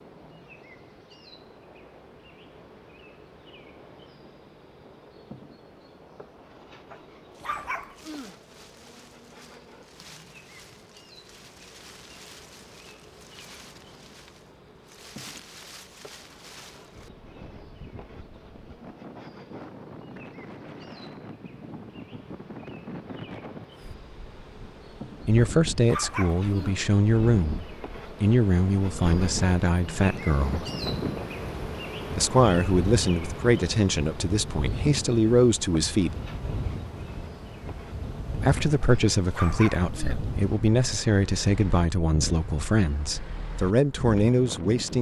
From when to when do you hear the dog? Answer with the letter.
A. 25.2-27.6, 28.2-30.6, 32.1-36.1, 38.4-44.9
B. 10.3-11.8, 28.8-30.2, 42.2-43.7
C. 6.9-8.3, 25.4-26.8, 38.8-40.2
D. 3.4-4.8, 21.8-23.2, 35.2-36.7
C.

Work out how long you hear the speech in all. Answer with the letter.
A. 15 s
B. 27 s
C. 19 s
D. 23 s
A.